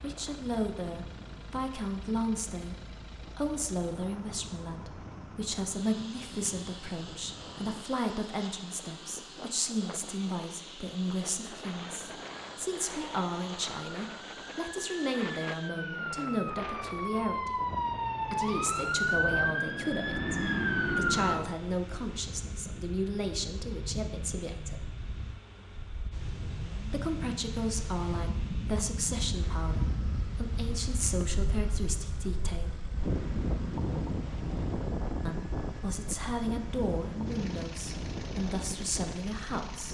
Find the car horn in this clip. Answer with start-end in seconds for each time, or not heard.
not heard.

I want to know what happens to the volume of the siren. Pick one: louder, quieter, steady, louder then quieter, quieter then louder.
louder.